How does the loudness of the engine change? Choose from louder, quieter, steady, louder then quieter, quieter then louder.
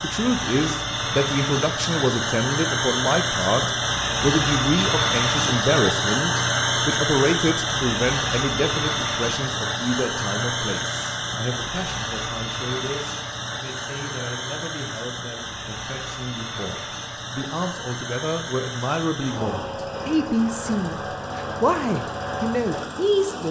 quieter.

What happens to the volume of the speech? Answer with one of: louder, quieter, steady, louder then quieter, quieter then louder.
quieter then louder.